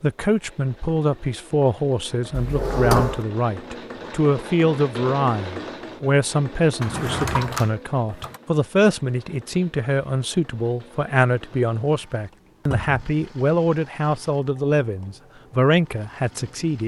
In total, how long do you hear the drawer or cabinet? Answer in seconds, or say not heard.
3 s.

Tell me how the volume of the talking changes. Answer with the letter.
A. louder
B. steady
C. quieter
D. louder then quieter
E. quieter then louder
B.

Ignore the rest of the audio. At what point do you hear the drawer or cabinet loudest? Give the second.
3 s.